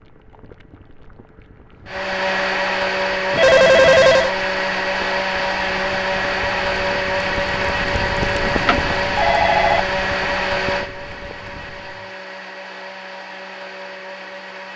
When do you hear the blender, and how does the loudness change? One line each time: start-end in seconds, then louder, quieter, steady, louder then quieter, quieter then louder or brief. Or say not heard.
1.8-14.7 quieter.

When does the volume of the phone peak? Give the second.
4 s.